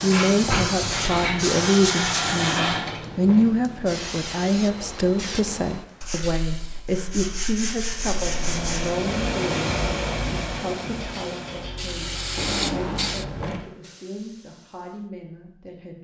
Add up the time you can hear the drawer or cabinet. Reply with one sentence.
The drawer or cabinet can be heard for 3 seconds in total.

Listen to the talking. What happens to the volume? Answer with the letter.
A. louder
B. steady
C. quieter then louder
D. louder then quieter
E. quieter
E.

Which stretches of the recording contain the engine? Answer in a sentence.
The engine can be heard from 7.8 to 13.5 s.